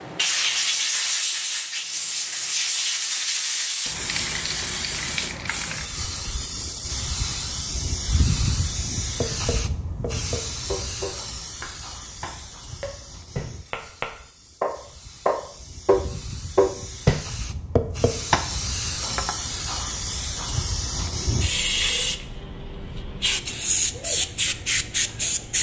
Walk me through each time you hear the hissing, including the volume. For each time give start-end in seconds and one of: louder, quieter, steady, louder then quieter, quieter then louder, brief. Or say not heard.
0.0-25.5 quieter then louder.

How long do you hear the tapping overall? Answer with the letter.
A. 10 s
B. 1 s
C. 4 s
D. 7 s
A.